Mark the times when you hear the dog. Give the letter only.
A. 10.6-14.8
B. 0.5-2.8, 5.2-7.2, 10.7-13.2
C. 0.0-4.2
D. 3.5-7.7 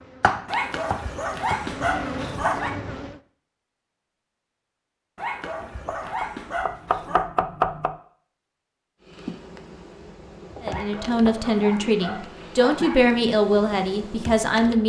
B.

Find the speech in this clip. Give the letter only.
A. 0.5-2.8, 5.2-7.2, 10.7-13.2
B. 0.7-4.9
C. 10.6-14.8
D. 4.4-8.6
C.